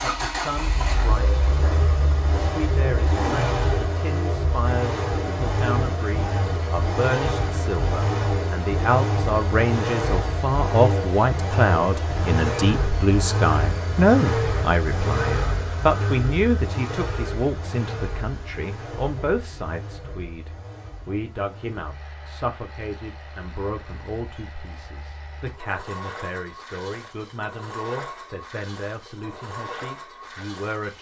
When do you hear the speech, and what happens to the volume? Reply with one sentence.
The speech can be heard from 0.0 to 30.9 s, getting louder then quieter.